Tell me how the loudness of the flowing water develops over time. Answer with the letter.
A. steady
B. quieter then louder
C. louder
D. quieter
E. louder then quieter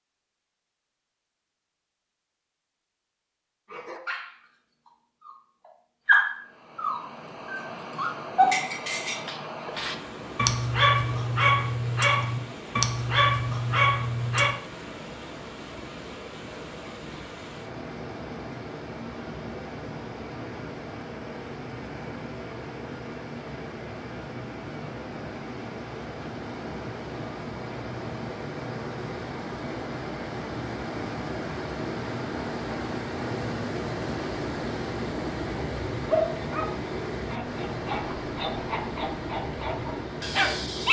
C.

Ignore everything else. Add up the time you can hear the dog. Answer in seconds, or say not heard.
16 s.